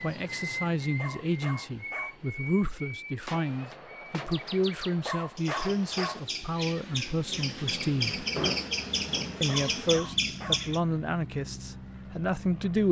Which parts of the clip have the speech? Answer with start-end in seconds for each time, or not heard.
0.0-8.2, 9.4-12.8.